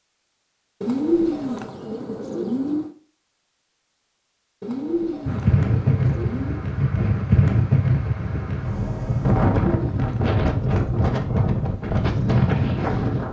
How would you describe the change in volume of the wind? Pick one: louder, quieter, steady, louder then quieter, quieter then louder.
steady.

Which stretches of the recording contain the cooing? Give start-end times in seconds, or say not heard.
0.8-3.0, 4.6-6.7, 9.6-11.2.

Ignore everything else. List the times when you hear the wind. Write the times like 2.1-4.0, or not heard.
5.2-13.2.